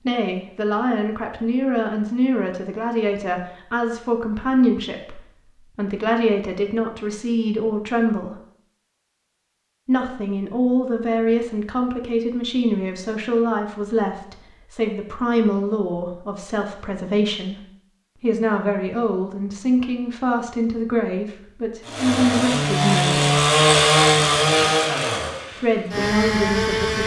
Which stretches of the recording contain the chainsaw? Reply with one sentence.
The chainsaw can be heard from 21.8 to 27.0 s.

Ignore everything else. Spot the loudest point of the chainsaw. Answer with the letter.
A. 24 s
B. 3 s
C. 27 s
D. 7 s
A.